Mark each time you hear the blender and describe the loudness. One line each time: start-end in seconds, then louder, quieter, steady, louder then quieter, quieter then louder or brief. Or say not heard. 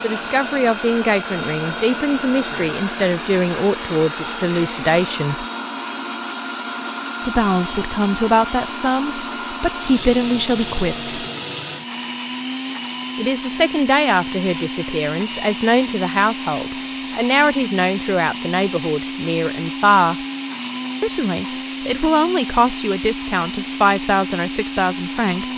0.0-25.5 steady.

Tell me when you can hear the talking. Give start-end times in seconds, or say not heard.
0.0-5.5, 7.2-11.2, 13.2-20.1, 21.0-25.5.